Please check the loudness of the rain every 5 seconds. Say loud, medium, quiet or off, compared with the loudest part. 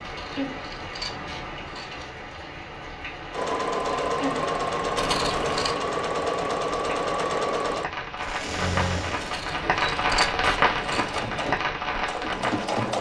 medium, medium, loud.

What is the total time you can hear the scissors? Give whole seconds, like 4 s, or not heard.
5 s.